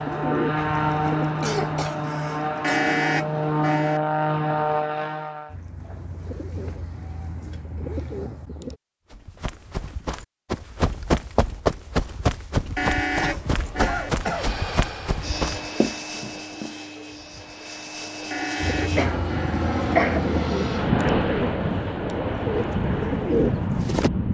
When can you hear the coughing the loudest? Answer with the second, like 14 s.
20 s.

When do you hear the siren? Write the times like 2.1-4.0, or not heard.
not heard.